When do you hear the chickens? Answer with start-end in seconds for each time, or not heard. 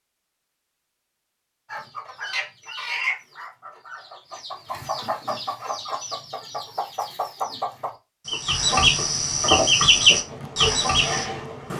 1.6-11.2.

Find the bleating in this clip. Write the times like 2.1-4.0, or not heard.
not heard.